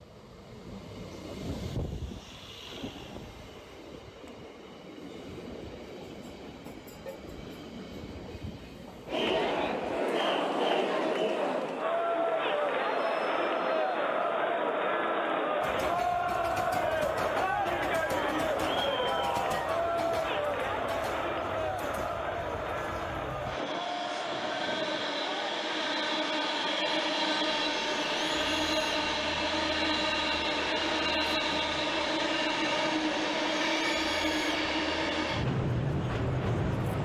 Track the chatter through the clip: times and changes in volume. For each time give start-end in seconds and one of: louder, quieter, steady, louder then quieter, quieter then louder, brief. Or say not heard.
9.1-37.0 quieter.